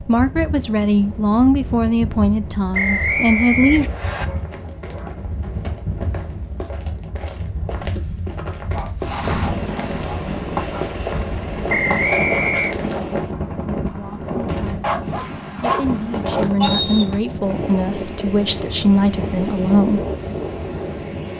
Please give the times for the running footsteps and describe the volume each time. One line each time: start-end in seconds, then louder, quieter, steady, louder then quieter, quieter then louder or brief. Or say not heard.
4.2-13.0 louder.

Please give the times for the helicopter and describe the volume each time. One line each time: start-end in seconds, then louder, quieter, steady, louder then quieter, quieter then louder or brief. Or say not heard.
9.0-16.4 quieter.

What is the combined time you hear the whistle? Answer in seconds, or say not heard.
3 s.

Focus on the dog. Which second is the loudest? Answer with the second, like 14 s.
16 s.